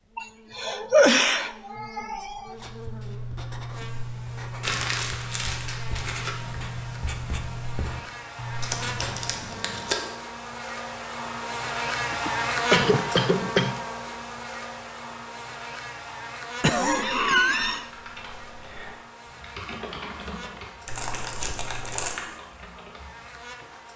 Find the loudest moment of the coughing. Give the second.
1 s.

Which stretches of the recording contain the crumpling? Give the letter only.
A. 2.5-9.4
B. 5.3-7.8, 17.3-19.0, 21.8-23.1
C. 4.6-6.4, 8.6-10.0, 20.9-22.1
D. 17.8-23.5
C.